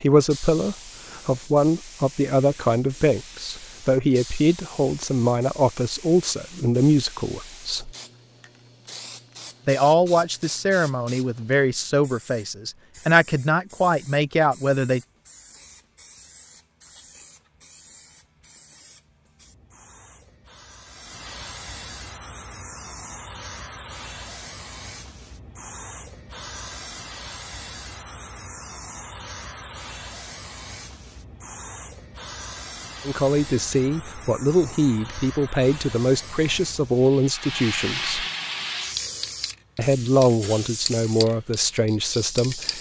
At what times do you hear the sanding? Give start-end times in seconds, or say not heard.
not heard.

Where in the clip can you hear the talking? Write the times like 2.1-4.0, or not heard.
0.0-7.9, 9.7-15.0, 33.0-38.2, 39.8-42.7.